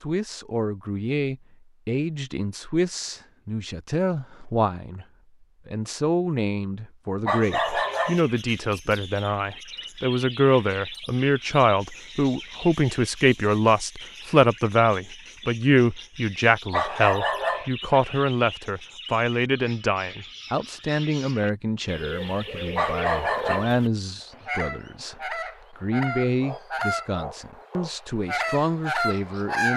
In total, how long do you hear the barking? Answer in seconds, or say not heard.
3 s.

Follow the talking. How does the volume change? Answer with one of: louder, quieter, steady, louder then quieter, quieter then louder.
louder then quieter.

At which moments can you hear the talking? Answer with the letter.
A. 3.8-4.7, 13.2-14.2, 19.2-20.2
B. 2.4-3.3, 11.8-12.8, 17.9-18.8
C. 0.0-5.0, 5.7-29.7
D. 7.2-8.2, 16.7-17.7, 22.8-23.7
C.